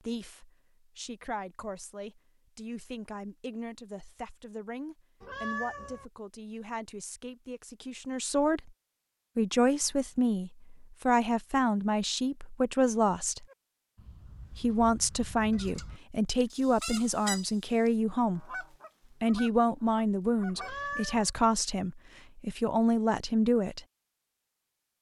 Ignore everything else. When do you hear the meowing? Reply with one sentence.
The meowing can be heard from 5.2 to 6.0 s and from 20.6 to 21.3 s.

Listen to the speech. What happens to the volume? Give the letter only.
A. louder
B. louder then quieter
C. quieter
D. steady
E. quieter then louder
A.